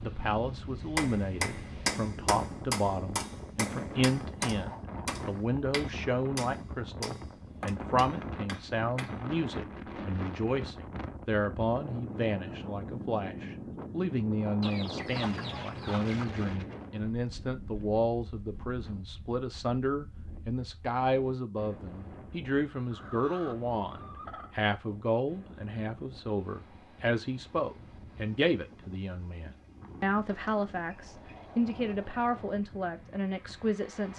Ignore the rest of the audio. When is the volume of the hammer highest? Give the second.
2 s.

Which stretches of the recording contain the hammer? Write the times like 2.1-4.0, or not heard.
0.9-9.2.